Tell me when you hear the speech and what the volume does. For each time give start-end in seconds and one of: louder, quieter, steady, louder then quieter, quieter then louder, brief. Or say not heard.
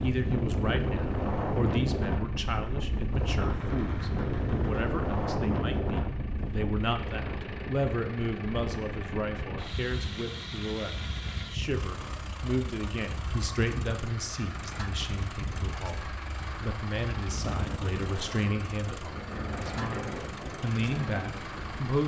0.0-22.0 steady.